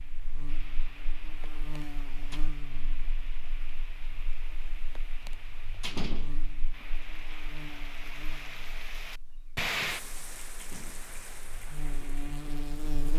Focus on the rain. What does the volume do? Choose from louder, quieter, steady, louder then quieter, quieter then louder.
louder then quieter.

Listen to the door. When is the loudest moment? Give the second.
6 s.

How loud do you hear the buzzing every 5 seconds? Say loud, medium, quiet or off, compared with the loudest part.
medium, quiet, loud.